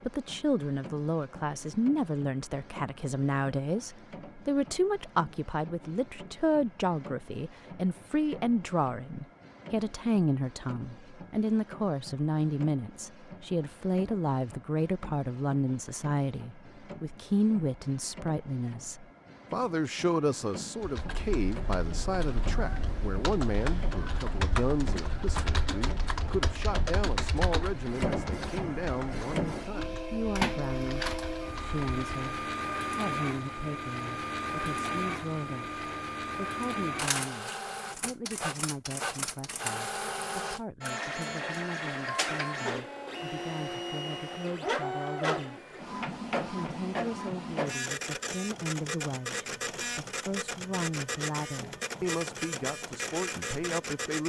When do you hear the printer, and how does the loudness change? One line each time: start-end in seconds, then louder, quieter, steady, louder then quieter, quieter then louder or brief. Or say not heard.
0.0-54.2 louder.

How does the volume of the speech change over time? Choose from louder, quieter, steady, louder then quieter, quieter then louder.
quieter.